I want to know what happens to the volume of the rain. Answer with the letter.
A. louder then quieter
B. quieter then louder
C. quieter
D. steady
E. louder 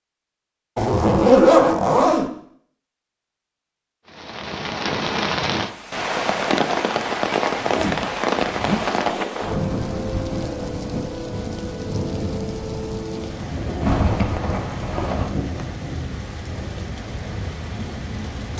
C.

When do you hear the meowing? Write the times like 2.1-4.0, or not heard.
not heard.